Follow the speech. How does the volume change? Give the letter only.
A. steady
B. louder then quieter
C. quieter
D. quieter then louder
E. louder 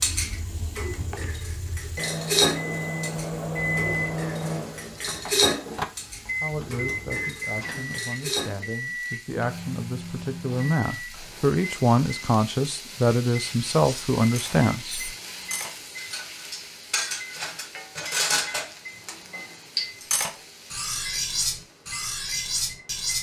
E.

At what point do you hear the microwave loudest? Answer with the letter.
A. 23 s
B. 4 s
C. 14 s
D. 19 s
B.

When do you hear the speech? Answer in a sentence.
The speech can be heard from 6.4 to 15.1 s.